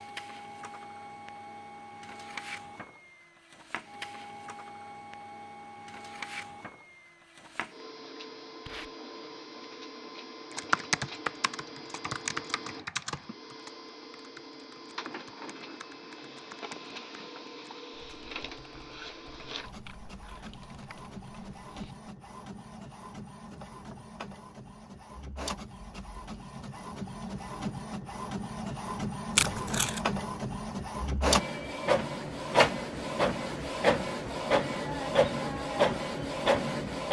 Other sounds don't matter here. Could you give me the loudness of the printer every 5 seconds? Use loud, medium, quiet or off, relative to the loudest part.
quiet, quiet, quiet, quiet, quiet, medium, loud, loud.